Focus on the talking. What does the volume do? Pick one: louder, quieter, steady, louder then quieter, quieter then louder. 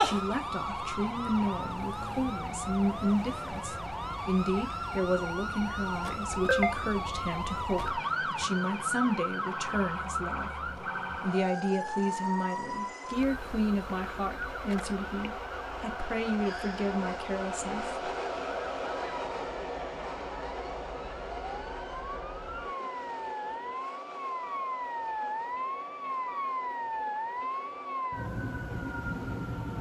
steady.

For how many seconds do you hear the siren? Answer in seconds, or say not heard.
30 s.